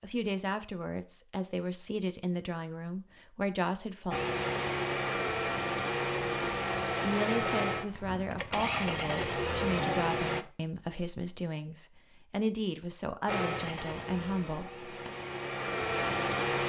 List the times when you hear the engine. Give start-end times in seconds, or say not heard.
4.1-10.4, 13.2-16.6.